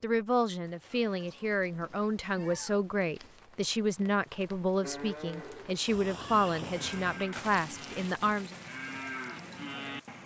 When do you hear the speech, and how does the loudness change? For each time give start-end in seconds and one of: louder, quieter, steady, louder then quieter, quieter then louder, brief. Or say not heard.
0.0-8.6 steady.